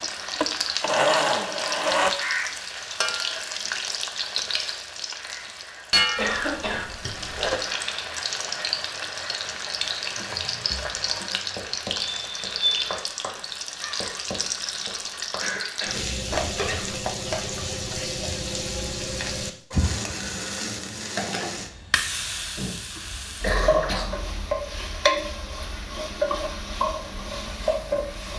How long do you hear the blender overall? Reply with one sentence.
The blender can be heard for 2 seconds in total.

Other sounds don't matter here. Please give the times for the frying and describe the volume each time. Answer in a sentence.
The frying can be heard from 0.0 to 28.3 s, at a steady volume.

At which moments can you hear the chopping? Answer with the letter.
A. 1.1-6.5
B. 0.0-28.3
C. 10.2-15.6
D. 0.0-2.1
C.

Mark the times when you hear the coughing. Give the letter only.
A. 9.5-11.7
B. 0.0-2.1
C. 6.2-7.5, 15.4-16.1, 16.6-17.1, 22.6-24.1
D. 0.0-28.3
C.